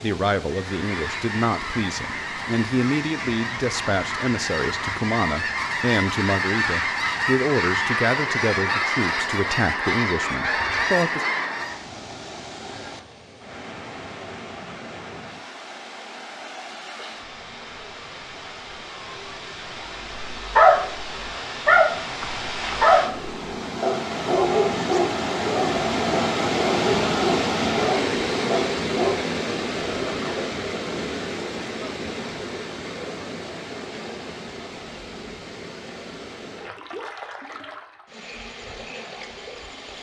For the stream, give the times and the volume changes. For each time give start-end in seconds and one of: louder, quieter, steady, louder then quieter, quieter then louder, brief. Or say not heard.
0.0-39.9 louder then quieter.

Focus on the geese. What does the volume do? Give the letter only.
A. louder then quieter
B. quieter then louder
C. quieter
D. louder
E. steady
D.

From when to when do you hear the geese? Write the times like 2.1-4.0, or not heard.
0.5-11.8.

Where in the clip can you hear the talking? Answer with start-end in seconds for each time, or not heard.
0.0-11.2.